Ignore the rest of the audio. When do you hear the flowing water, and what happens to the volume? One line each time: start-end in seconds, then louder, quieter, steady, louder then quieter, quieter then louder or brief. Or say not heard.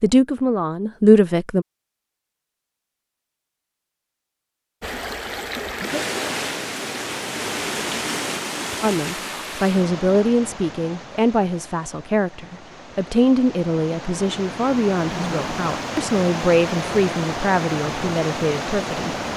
4.8-19.3 quieter then louder.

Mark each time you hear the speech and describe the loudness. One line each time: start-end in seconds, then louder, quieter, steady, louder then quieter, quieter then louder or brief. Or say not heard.
0.0-1.6 brief
8.8-19.1 steady.